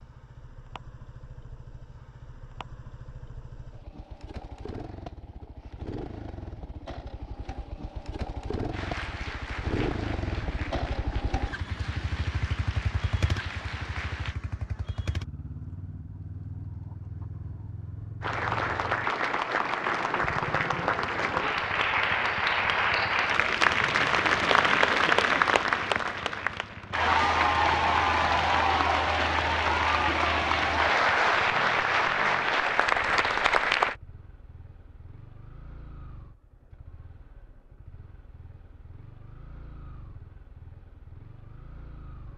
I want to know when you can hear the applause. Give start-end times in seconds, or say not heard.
8.7-14.3, 18.2-34.0.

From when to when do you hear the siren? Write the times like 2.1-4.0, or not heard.
not heard.